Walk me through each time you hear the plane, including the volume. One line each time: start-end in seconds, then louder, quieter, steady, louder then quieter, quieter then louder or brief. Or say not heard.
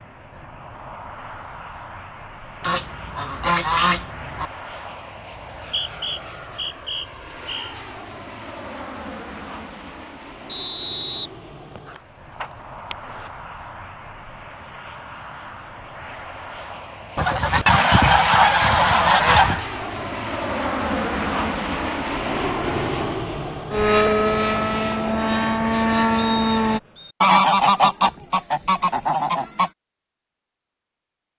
0.0-26.8 louder.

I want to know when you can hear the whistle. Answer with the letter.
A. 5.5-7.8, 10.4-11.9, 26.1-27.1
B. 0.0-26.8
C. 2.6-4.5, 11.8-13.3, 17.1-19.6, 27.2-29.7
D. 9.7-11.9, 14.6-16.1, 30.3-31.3
A.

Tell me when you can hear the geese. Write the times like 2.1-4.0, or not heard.
2.6-4.5, 11.8-13.3, 17.1-19.6, 27.2-29.7.